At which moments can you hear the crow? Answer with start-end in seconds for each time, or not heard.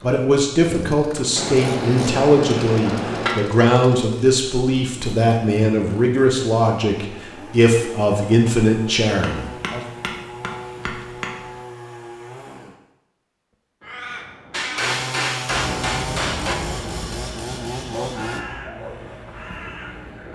13.8-20.3.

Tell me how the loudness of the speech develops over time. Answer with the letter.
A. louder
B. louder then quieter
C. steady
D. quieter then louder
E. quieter
C.